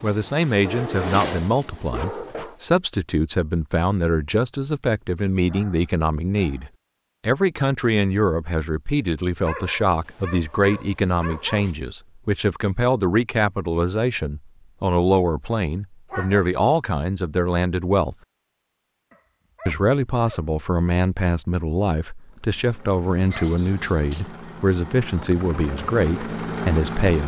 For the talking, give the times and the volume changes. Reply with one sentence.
The talking can be heard from 0.0 to 18.1 s, at a steady volume; and from 19.6 to 27.2 s, at a steady volume.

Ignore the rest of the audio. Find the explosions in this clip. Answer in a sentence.
The explosions can't be heard in this clip.